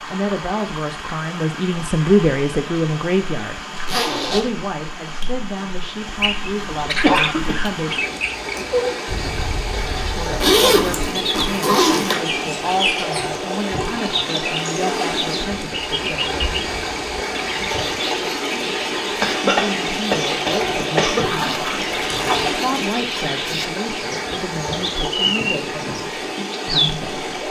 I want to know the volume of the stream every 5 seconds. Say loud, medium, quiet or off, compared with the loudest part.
medium, medium, loud, loud, loud, loud.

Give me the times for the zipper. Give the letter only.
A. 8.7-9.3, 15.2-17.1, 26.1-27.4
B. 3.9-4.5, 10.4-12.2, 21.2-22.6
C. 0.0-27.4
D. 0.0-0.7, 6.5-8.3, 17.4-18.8
B.